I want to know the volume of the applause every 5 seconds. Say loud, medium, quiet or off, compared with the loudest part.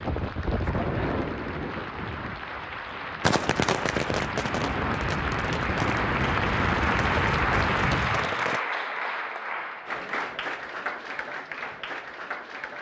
medium, loud, medium.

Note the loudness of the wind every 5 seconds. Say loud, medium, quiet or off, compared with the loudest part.
loud, loud, off.